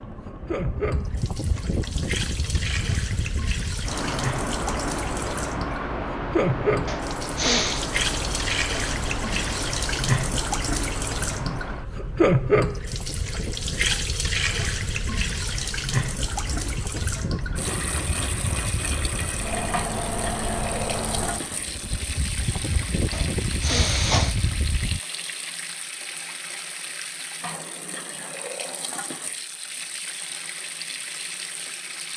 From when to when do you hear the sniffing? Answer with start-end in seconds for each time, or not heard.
6.8-7.8, 23.1-24.4.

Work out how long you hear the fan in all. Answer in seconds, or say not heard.
25 s.